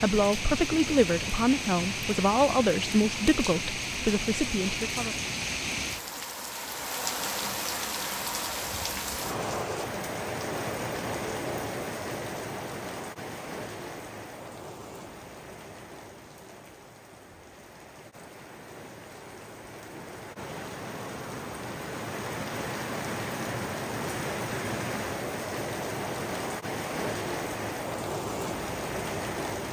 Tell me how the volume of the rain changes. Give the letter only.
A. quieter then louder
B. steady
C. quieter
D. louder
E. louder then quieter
A.